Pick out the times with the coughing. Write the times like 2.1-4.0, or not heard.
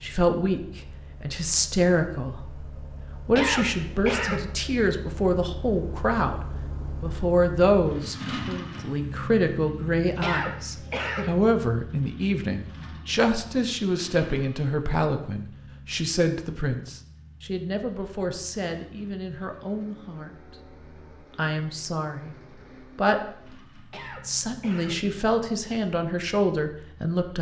3.3-4.5, 10.2-11.3, 23.9-25.1.